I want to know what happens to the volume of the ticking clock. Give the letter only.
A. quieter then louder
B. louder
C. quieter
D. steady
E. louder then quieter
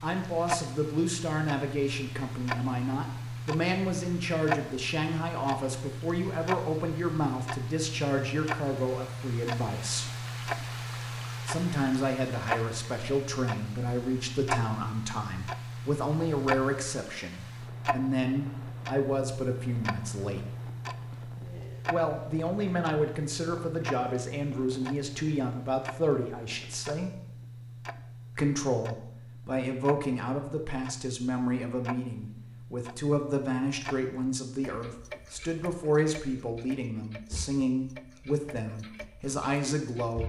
C.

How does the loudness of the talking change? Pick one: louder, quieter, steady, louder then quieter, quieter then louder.
steady.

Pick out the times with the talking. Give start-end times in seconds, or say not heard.
0.0-10.1, 11.4-20.4, 21.9-27.1, 28.4-40.2.